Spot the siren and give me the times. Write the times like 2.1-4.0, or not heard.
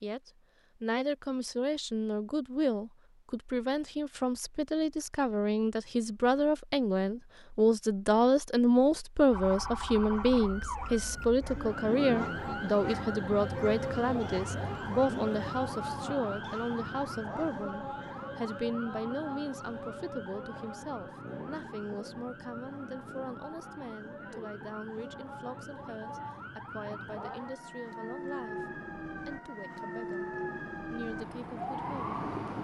9.3-32.5.